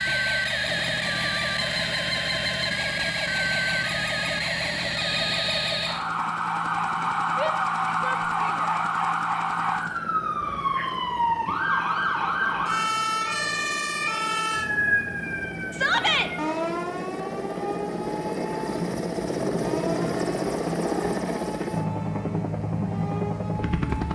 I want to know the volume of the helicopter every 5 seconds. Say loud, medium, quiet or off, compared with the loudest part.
quiet, quiet, quiet, loud, loud.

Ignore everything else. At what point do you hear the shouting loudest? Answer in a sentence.
The loudest moment of the shouting is at 16 seconds.